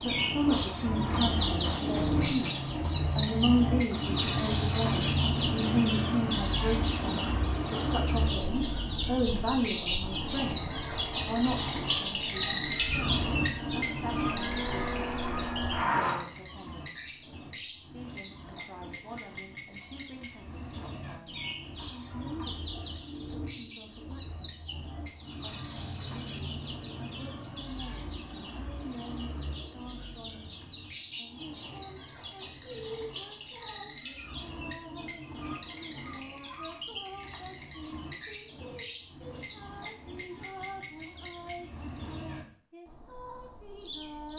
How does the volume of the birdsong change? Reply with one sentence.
The loudness of the birdsong goes down.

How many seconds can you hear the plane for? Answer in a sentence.
The plane can be heard for 16 seconds in total.